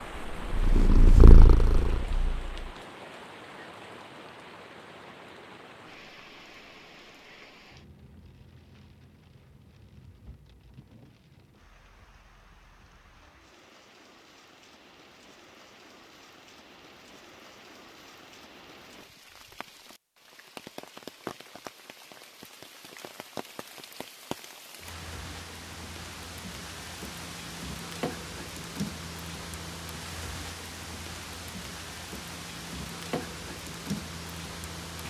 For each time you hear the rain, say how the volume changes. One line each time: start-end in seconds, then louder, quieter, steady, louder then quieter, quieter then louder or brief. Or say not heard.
0.0-35.0 quieter then louder.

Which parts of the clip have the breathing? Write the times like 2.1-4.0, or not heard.
not heard.